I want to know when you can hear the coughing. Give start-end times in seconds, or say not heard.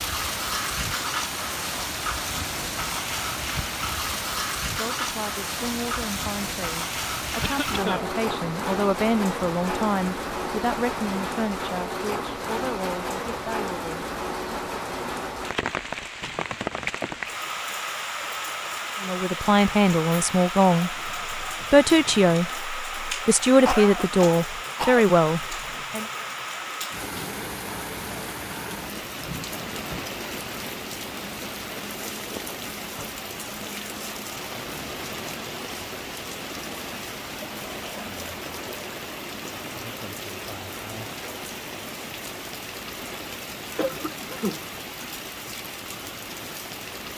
7.4-8.1, 23.6-25.1, 43.8-44.6.